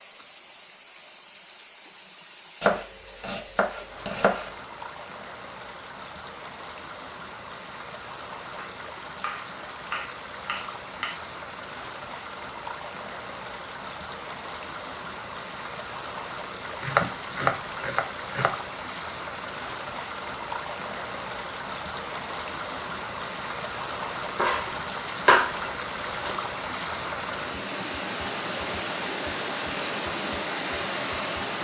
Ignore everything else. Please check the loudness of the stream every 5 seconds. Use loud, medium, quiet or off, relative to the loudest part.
quiet, medium, medium, medium, loud, loud, loud.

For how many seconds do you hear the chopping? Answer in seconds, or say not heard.
8 s.